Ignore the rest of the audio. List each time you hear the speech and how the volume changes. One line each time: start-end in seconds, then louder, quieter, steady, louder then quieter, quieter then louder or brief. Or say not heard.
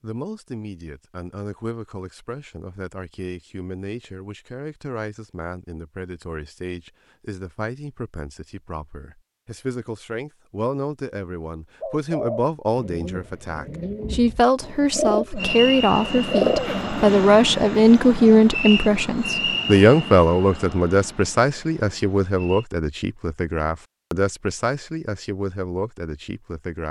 0.0-26.8 louder then quieter.